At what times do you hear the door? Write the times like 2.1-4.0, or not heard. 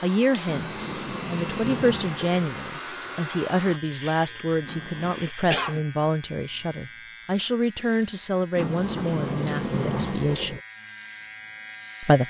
0.5-2.5, 4.7-5.3, 8.6-10.6.